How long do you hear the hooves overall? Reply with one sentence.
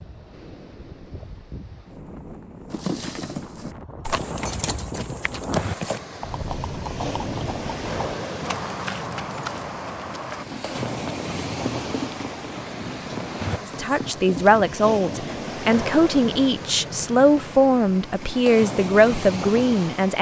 The hooves can be heard for 12 seconds in total.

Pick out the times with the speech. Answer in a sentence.
You can hear the speech from 13.6 to 20.1 s.